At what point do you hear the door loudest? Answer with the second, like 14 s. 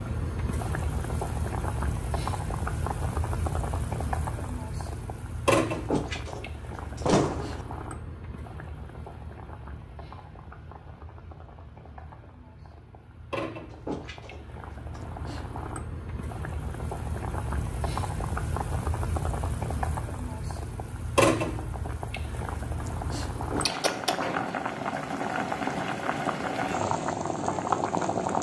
7 s.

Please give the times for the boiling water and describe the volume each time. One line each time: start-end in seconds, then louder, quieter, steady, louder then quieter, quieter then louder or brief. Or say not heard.
0.0-28.3 quieter then louder.